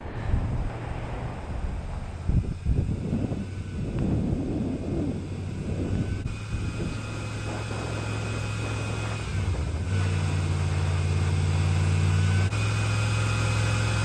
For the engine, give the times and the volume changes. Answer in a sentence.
The engine can be heard from 0.0 to 14.0 s, getting louder.